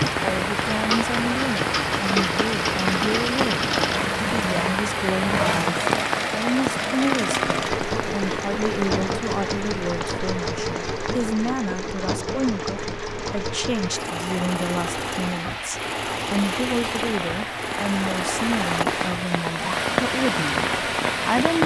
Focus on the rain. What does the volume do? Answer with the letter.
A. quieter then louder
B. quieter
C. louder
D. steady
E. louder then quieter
A.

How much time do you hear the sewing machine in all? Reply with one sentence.
The sewing machine can be heard for 21 seconds in total.